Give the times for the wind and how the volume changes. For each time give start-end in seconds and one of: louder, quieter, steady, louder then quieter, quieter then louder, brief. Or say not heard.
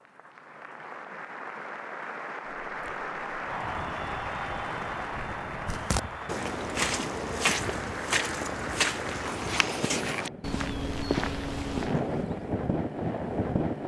3.4-13.8 louder.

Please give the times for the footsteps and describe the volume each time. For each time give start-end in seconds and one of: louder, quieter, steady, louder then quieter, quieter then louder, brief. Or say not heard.
5.7-12.2 steady.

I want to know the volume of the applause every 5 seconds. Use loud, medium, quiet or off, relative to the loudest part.
loud, loud, off.